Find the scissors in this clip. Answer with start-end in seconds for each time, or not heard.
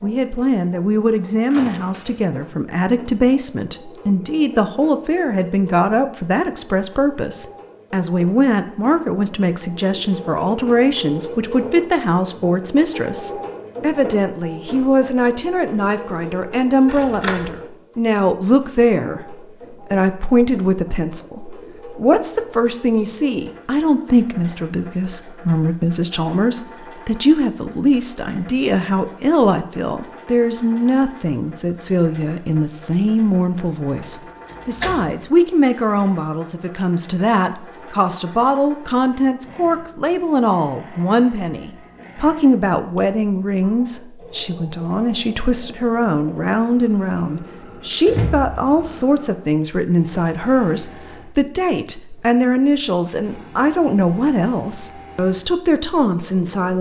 16.9-17.5.